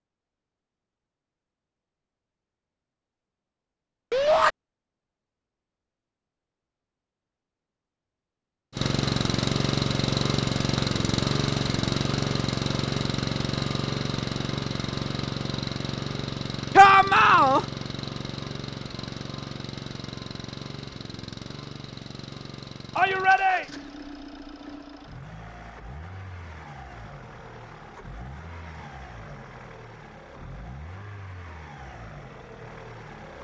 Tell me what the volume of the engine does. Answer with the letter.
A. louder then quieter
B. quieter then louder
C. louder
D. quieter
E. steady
D.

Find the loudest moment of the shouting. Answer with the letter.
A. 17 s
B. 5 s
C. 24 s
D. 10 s
A.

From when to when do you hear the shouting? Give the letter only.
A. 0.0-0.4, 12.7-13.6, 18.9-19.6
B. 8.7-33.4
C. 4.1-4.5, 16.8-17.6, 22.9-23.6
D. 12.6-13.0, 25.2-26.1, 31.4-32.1
C.